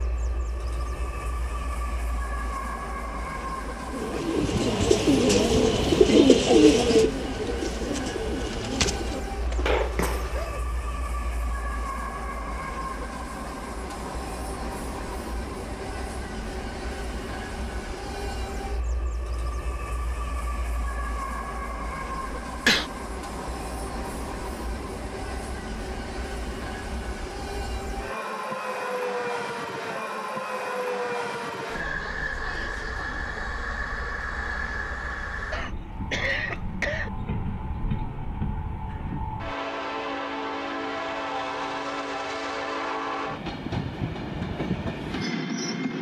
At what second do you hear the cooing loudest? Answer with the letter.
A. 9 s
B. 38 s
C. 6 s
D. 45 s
C.